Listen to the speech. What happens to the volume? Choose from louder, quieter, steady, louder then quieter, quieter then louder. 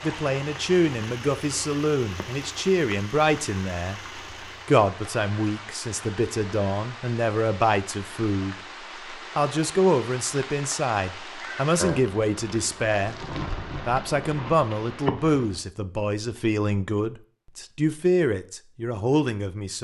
steady.